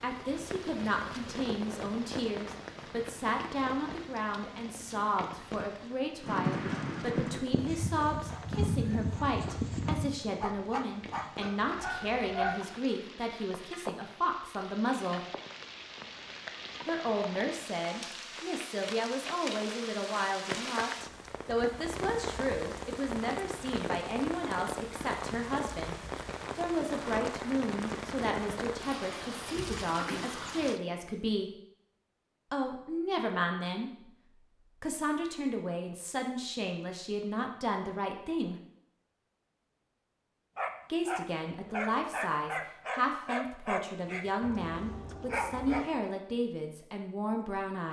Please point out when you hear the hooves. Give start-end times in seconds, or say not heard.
6.2-12.5.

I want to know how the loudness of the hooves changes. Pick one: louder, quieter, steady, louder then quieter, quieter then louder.
quieter.